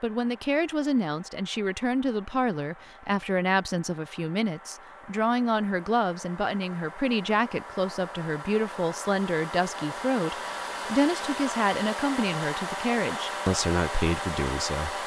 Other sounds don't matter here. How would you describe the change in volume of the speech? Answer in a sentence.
The volume of the speech stays about the same.